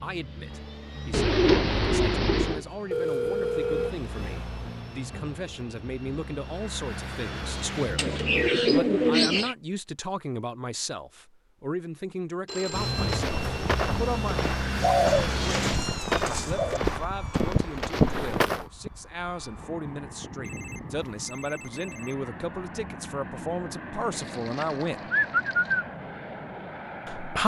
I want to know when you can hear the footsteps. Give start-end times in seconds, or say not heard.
12.9-18.6.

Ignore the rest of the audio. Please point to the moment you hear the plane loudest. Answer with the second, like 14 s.
18 s.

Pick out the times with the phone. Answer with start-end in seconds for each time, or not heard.
2.9-4.0, 12.4-13.2, 20.4-22.2.